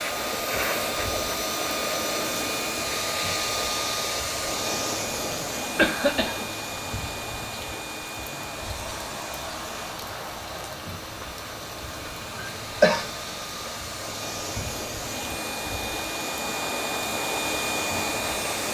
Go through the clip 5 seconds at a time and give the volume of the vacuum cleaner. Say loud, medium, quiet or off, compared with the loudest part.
loud, medium, medium, loud.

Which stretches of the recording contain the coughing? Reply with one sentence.
The coughing can be heard from 5.0 to 6.5 s and from 12.3 to 13.1 s.